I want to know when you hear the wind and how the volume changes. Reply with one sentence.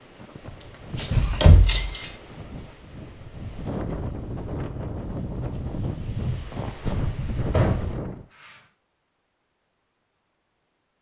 The wind can be heard from 0.0 to 8.2 s, getting louder.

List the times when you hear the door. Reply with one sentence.
The door can be heard from 0.9 to 2.0 s and from 7.5 to 8.6 s.